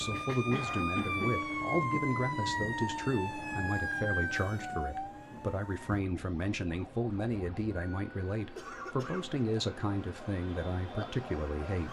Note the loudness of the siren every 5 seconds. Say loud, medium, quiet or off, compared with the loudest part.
loud, quiet, medium.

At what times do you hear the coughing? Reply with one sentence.
The coughing can be heard from 0.1 to 1.6 s and from 8.5 to 9.4 s.